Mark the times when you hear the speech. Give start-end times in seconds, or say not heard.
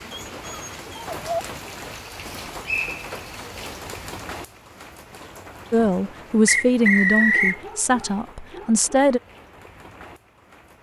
5.7-9.2.